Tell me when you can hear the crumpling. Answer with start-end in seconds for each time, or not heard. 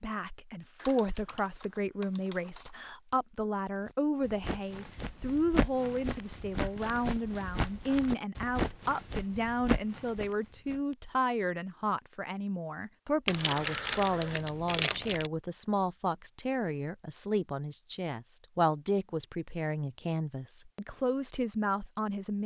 13.2-15.3.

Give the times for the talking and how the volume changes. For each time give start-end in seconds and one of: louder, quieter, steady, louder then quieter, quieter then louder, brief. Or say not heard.
0.0-22.4 steady.